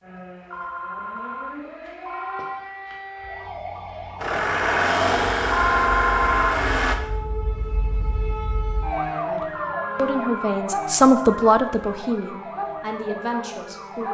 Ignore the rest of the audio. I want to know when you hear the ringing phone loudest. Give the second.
6 s.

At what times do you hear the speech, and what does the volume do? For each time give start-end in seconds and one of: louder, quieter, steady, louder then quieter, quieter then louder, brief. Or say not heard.
9.2-14.0 louder then quieter.